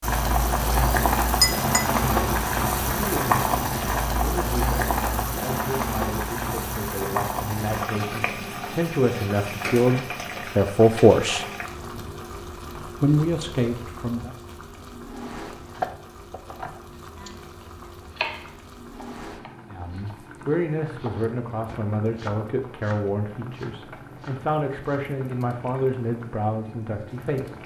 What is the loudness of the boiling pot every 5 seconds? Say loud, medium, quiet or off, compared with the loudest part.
loud, medium, quiet, quiet, quiet, quiet.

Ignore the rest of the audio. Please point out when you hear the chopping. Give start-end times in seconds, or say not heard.
15.4-17.4, 18.1-25.1.